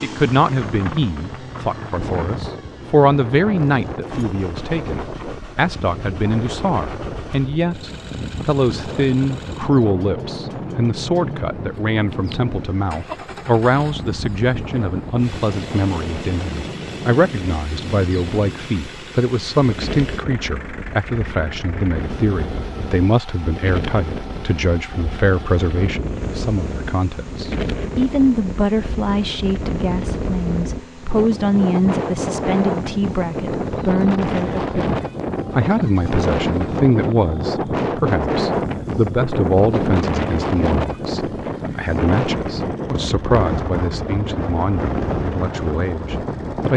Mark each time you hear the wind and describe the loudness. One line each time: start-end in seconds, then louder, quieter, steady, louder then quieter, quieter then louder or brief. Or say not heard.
0.0-46.7 louder.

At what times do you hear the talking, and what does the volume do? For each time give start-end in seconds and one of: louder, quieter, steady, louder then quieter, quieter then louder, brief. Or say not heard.
0.0-46.7 steady.